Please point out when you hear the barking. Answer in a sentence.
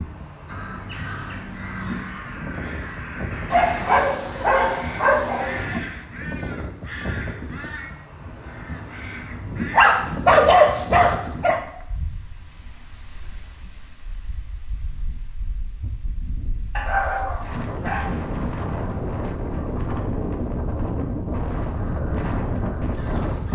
The barking can be heard from 3.5 to 5.8 s, from 9.7 to 11.6 s and from 16.8 to 18.6 s.